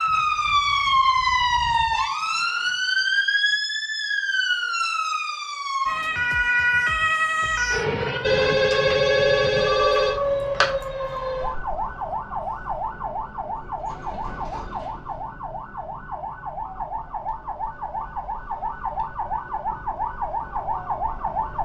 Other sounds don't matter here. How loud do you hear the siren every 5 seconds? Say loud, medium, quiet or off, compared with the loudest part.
loud, loud, medium, medium, medium.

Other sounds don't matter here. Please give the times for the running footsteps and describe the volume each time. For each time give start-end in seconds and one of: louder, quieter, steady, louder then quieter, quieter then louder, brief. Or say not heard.
not heard.